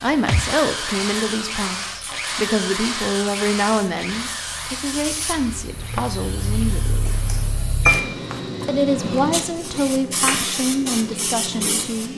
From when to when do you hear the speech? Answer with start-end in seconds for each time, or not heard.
0.0-7.2, 8.7-12.1.